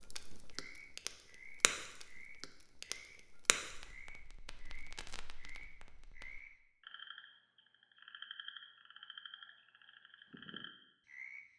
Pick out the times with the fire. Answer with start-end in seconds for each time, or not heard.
0.0-6.4.